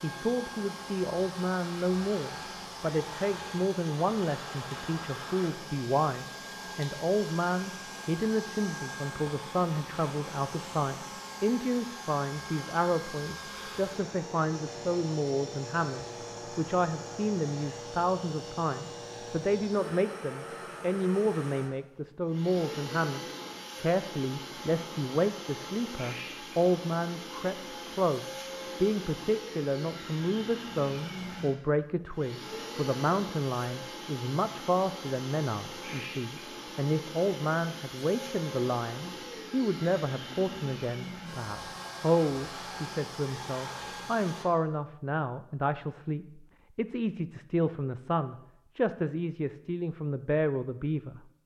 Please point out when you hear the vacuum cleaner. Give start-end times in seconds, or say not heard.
0.0-44.5.